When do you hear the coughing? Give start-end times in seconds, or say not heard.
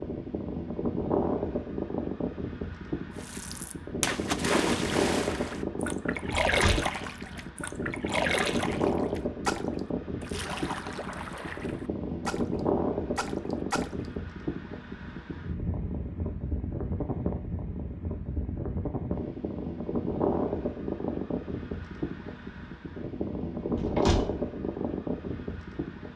not heard.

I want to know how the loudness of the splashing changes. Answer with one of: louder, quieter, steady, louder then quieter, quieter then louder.
quieter.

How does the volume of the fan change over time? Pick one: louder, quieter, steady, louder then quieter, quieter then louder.
steady.